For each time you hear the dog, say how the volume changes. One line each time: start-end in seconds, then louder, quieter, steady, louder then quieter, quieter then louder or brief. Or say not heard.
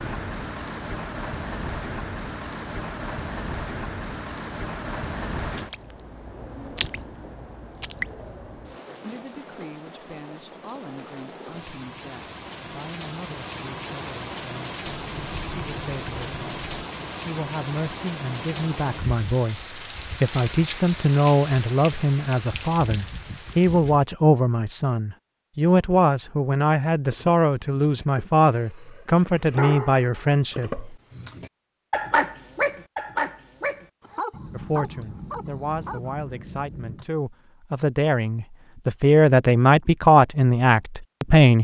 27.1-36.1 louder then quieter.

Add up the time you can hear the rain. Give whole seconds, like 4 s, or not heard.
24 s.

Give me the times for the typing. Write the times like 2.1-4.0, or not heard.
14.8-16.9, 34.3-37.0.